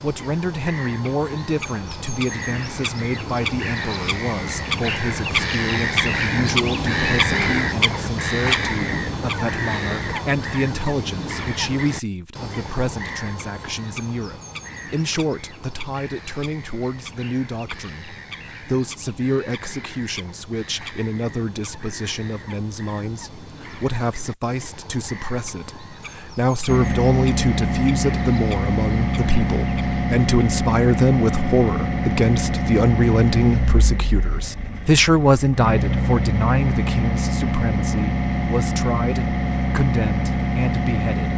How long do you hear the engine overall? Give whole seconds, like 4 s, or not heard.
15 s.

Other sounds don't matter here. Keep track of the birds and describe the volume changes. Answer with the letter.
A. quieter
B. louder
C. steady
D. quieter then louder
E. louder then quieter
A.